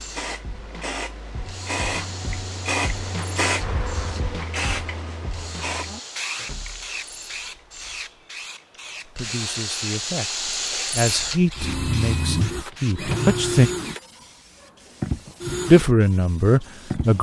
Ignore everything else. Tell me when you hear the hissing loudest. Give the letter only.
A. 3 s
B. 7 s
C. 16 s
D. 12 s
A.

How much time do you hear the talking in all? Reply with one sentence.
The talking can be heard for 6 seconds in total.